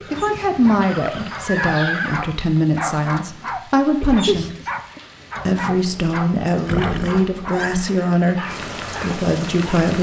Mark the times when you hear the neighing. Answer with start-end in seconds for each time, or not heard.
0.8-2.2, 6.7-7.7.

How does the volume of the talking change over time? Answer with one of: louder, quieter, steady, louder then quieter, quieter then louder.
steady.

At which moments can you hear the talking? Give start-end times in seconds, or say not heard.
0.1-4.5, 5.5-9.9.